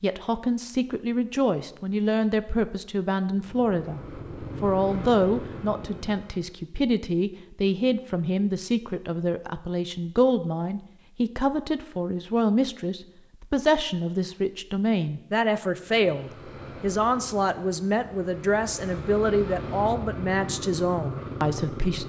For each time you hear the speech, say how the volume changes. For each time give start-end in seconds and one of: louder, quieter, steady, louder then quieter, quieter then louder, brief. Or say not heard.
0.0-4.0 steady
4.6-22.0 steady.